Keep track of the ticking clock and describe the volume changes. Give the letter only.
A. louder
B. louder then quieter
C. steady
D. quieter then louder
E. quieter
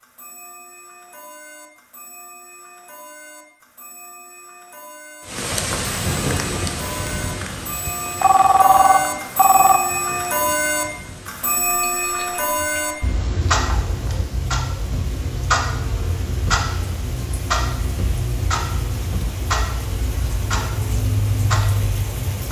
A.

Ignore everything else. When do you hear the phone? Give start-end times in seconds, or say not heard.
8.2-9.8.